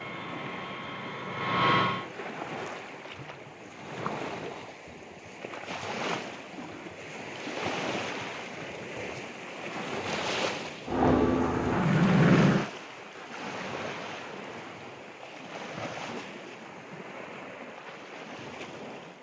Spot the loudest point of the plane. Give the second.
12 s.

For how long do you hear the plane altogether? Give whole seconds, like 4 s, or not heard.
4 s.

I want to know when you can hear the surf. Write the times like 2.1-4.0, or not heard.
0.0-19.1.